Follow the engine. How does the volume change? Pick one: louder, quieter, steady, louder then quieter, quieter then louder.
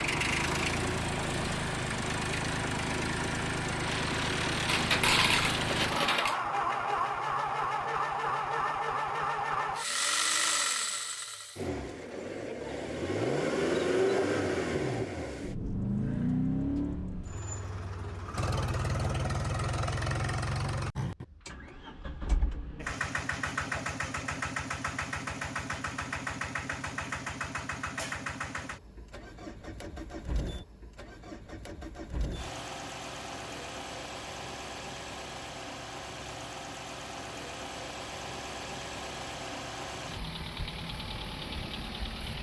quieter.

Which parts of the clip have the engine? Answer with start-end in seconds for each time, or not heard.
0.0-42.3.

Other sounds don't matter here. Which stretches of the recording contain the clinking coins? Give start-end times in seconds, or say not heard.
4.7-6.3.